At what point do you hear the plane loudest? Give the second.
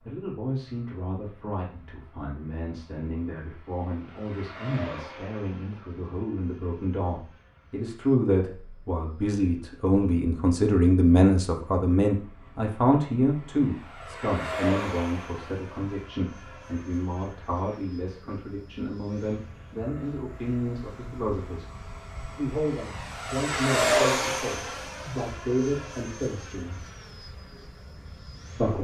24 s.